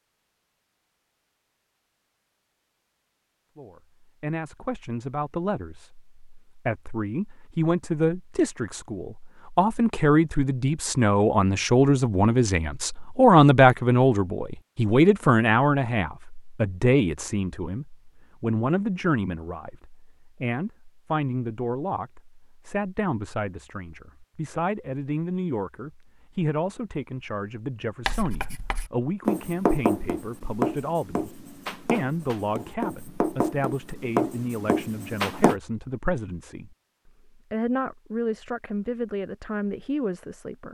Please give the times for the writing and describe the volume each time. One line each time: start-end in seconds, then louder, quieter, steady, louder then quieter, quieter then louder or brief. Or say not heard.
28.1-35.5 quieter then louder.